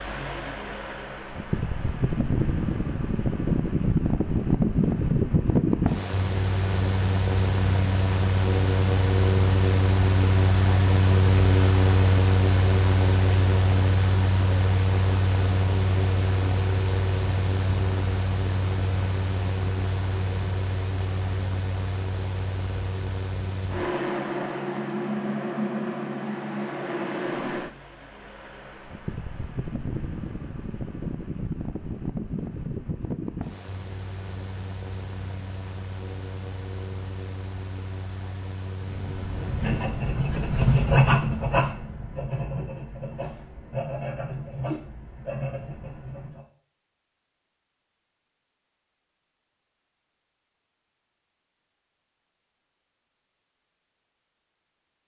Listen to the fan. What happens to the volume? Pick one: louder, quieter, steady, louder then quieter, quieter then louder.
quieter.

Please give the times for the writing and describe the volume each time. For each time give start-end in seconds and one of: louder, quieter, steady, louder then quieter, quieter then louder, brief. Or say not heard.
38.8-46.5 louder then quieter.